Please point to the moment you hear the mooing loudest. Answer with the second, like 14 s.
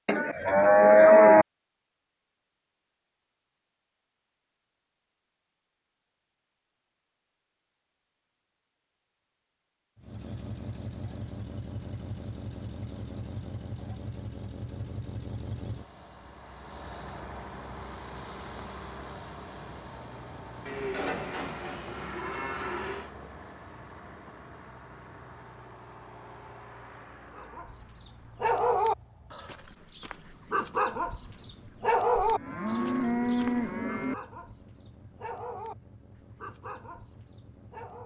1 s.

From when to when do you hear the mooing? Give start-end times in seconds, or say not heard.
0.1-1.4, 20.6-23.1, 32.1-34.1.